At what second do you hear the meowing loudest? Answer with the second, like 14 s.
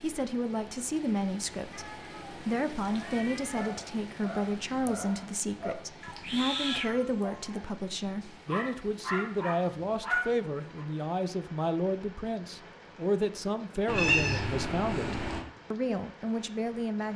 14 s.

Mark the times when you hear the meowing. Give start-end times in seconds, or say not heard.
1.7-3.7, 6.0-7.4, 13.8-15.4.